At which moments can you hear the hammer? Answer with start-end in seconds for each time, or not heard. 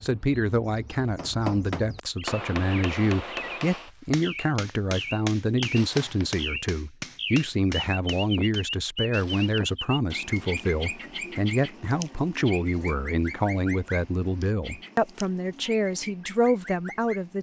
1.1-8.7.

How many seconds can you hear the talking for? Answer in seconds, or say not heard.
17 s.